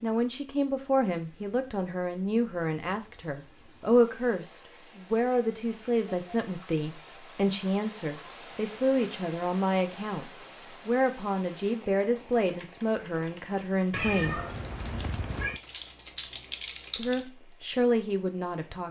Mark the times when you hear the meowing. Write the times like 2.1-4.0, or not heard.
13.9-15.6.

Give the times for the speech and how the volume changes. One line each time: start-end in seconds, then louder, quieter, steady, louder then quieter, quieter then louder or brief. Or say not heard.
0.0-14.4 steady
16.9-18.8 brief.